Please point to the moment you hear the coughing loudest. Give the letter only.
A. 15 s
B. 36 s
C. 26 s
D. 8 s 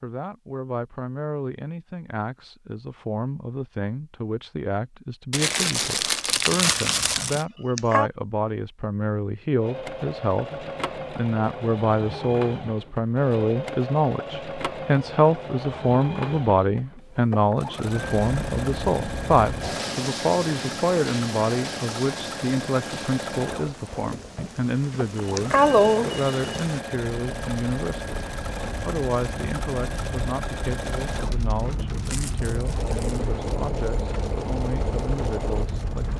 C.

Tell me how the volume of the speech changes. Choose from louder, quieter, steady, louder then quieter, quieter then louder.
louder then quieter.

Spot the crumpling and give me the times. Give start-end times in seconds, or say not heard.
5.3-7.5, 32.0-33.2.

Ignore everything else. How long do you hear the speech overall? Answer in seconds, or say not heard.
36 s.